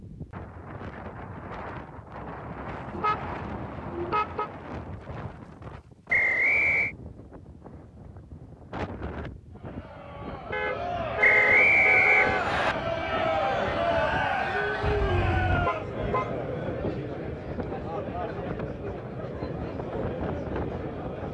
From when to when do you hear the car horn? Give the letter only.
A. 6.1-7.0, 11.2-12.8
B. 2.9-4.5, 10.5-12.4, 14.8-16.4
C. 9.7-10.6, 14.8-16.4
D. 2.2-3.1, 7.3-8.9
B.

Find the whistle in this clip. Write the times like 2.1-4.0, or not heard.
6.1-7.0, 11.2-12.8.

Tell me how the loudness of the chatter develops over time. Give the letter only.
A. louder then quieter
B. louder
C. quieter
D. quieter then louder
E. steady
A.